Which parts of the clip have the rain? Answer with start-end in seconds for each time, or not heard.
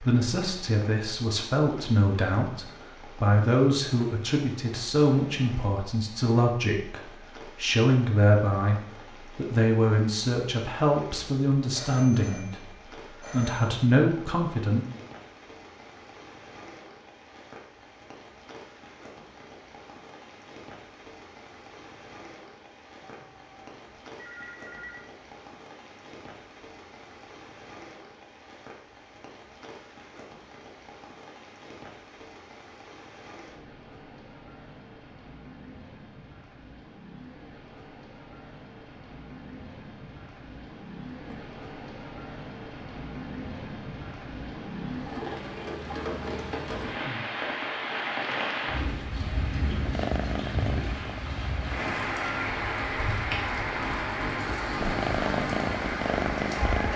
0.0-56.9.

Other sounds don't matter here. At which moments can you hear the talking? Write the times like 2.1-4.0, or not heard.
0.0-14.8.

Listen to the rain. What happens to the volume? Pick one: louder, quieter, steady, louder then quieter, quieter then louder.
louder.